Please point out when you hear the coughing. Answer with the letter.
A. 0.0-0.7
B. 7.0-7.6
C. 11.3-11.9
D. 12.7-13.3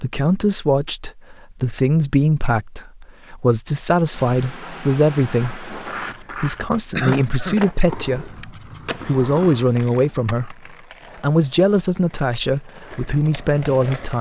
B.